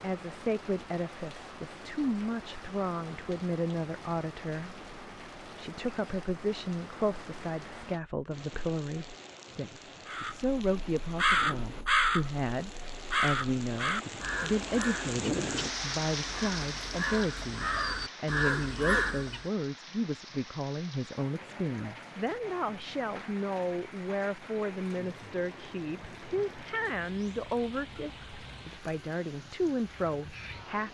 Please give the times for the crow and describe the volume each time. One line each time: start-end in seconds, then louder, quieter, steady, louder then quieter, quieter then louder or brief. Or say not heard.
10.1-19.4 quieter then louder.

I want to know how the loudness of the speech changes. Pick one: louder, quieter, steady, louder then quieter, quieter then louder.
steady.